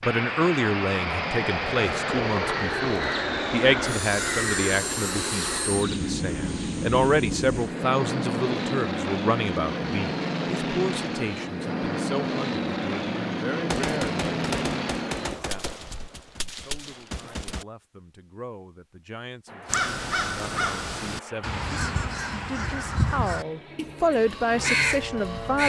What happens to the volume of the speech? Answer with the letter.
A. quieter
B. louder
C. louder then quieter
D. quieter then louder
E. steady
D.